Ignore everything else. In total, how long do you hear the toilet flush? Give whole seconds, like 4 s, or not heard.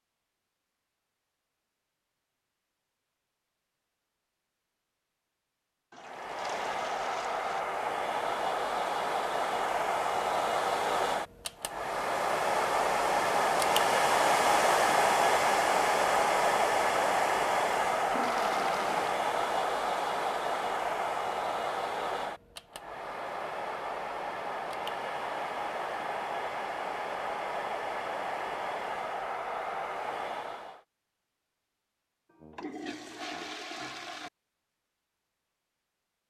5 s.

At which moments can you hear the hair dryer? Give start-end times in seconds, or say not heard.
6.0-30.8.